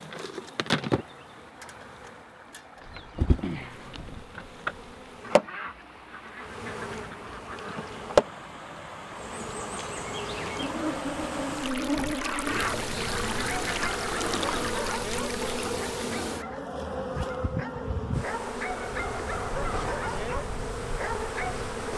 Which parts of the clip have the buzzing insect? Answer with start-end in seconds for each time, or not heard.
0.0-21.9.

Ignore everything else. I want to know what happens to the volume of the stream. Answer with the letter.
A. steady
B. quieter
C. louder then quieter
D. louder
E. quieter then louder
D.